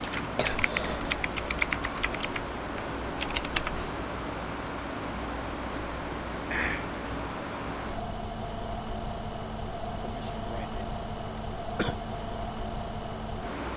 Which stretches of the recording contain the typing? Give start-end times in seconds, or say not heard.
0.0-3.9.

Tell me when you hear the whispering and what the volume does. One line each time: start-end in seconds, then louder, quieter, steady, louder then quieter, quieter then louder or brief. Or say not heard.
not heard.